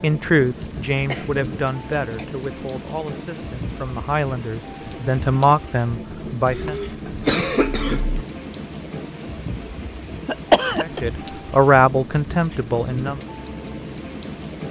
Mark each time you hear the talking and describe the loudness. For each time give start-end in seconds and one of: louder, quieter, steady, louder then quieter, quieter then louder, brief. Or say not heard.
0.0-6.8 quieter then louder
10.8-13.2 brief.